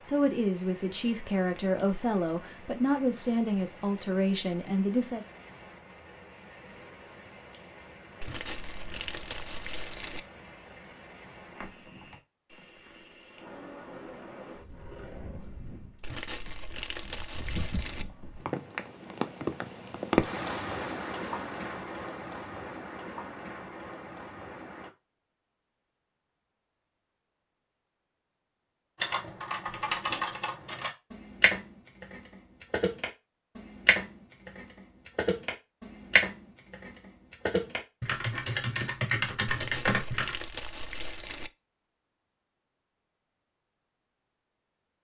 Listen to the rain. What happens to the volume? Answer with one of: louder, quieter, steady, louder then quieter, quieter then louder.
louder.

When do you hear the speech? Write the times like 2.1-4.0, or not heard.
0.0-5.2.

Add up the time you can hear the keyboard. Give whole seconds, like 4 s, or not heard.
11 s.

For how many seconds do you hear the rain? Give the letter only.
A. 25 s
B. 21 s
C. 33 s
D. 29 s
A.